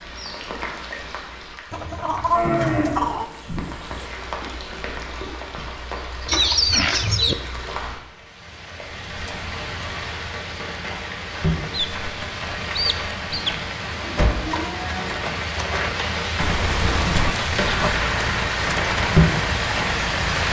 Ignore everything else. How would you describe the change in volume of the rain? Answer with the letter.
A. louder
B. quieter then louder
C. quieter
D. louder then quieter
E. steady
A.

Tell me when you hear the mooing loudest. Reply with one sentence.
The volume of the mooing peaks at 3 seconds.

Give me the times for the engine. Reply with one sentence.
You can hear the engine from 17.6 to 20.4 s.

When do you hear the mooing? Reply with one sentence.
The mooing can be heard from 2.4 to 4.0 s and from 13.8 to 15.4 s.